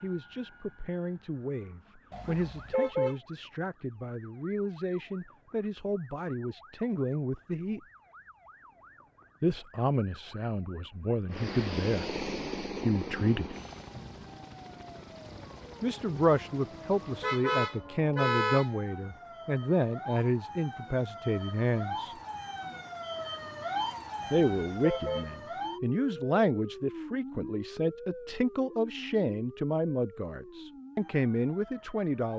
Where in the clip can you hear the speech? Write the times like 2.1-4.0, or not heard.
0.0-7.8, 9.4-13.6, 15.8-22.1, 24.3-32.3.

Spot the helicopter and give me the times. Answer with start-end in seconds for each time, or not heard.
11.2-17.4.